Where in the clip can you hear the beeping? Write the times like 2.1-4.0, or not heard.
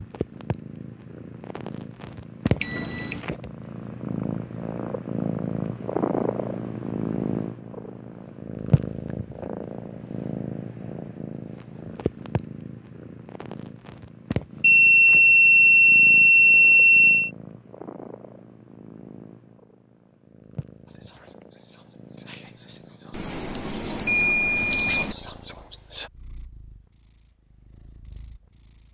2.6-3.2, 14.6-17.3, 23.1-25.1.